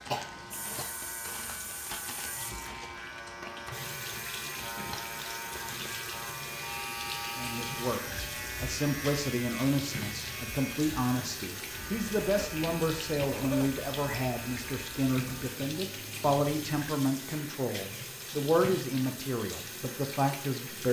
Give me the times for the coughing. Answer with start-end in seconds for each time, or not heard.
0.1-0.9, 12.2-13.7.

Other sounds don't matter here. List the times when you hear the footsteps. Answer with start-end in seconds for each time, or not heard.
0.0-3.4.